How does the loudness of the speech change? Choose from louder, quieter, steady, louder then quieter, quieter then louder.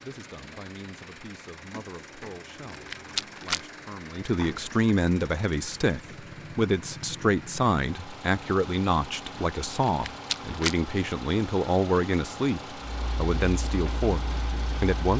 louder.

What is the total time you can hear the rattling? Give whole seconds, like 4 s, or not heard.
2 s.